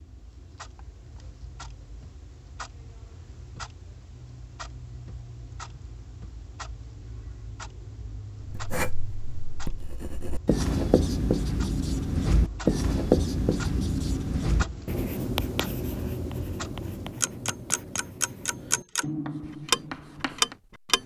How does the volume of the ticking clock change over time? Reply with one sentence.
The volume of the ticking clock goes up.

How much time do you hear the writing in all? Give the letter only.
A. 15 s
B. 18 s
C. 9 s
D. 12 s
D.